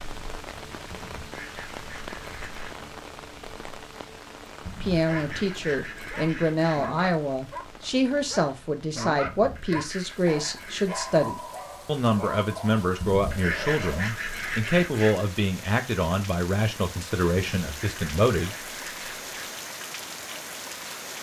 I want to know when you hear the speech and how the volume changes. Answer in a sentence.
The speech can be heard from 4.8 to 18.5 s, at a steady volume.